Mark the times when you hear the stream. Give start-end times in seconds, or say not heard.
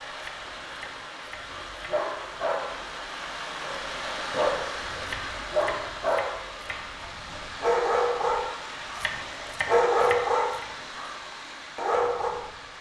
0.0-12.7.